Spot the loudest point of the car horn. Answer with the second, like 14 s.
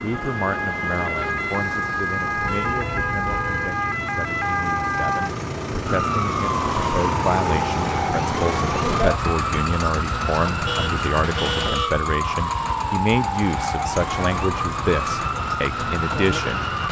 12 s.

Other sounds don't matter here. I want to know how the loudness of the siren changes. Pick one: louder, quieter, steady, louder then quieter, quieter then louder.
steady.